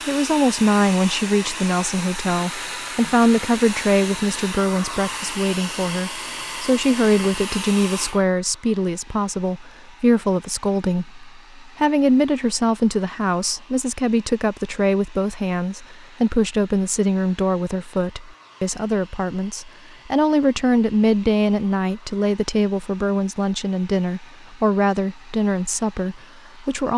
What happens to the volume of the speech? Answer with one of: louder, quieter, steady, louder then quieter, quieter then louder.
steady.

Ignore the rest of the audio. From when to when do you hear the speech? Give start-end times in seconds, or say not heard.
0.1-26.9.